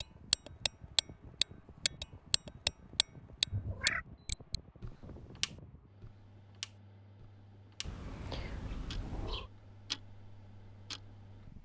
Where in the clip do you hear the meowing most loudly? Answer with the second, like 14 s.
4 s.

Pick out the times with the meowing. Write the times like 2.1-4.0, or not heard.
3.5-4.0, 7.8-9.5.